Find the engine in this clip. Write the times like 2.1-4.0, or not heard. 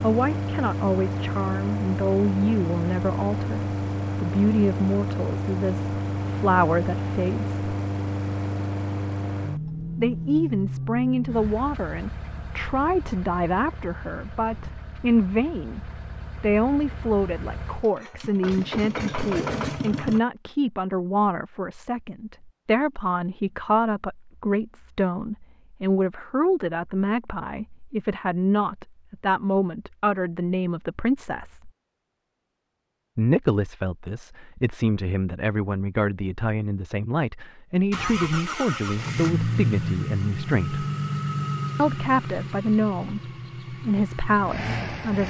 0.0-20.2, 37.9-45.2.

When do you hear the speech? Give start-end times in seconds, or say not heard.
0.0-7.5, 9.9-31.7, 33.1-40.9, 41.8-45.2.